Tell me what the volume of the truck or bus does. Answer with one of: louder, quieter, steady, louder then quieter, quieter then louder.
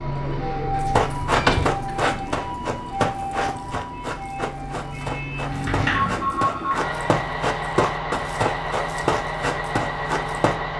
quieter then louder.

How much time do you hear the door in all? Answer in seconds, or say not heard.
2 s.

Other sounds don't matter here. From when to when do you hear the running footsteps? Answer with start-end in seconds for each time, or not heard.
0.8-10.6.